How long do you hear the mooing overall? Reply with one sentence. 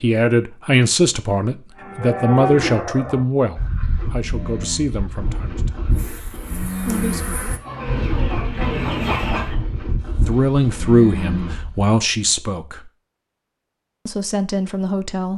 You can hear the mooing for 10 seconds altogether.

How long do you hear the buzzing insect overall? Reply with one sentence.
The buzzing insect can be heard for 2 seconds in total.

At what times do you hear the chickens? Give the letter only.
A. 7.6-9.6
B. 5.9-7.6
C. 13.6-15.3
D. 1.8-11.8
A.